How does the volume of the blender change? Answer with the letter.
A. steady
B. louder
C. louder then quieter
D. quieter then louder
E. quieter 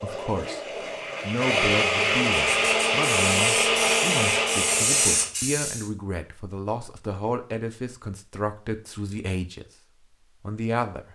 B.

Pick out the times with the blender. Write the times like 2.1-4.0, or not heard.
0.0-5.3.